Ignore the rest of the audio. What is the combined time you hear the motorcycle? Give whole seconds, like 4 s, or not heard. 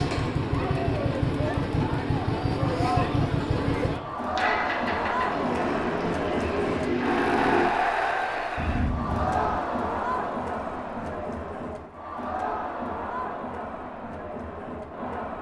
8 s.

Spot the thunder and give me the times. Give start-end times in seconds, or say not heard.
8.6-9.6.